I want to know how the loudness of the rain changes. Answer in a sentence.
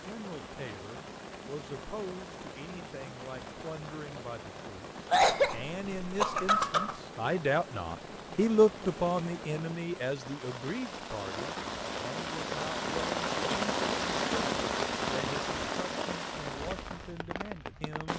The loudness of the rain goes up.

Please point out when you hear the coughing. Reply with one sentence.
You can hear the coughing from 5.1 to 7.0 s.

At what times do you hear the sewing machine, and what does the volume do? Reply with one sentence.
The sewing machine can't be heard in this clip.